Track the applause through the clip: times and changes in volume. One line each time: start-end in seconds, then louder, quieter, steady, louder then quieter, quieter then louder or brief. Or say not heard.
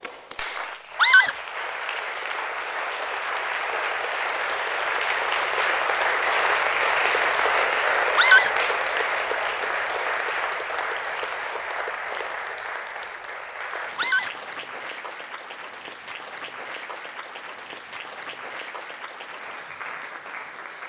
0.0-20.8 louder then quieter.